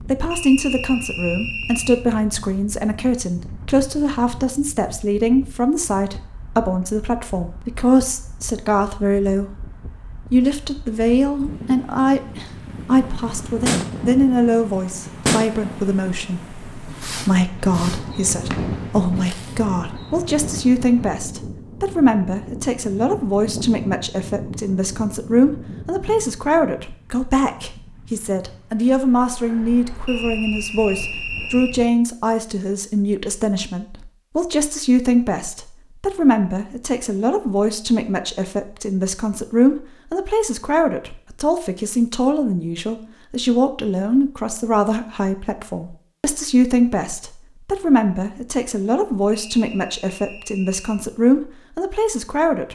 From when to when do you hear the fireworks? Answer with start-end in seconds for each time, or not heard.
13.7-19.6.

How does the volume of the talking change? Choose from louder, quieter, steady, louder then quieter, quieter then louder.
steady.